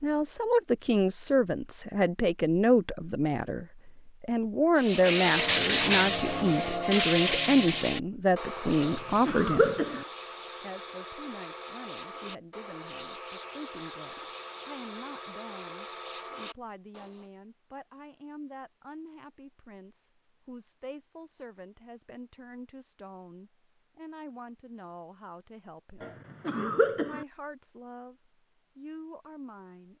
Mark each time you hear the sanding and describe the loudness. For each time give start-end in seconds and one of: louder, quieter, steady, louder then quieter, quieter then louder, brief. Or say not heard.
4.8-17.2 quieter.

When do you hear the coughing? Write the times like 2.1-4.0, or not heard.
8.8-10.1, 26.0-27.2.